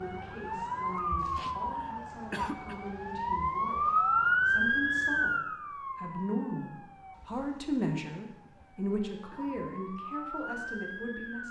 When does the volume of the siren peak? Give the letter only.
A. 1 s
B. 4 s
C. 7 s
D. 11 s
B.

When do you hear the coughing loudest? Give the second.
2 s.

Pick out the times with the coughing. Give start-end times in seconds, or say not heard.
1.4-2.8, 8.3-9.6.